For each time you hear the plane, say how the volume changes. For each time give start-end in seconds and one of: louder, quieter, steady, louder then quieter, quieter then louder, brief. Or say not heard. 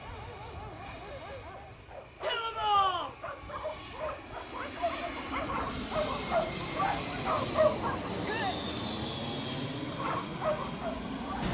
0.0-11.4 louder.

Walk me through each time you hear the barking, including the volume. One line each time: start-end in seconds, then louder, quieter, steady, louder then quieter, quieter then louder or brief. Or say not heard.
0.0-8.1 louder
9.8-11.4 brief.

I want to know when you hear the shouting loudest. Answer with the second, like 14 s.
3 s.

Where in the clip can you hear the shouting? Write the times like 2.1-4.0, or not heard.
2.2-3.1, 8.2-8.6.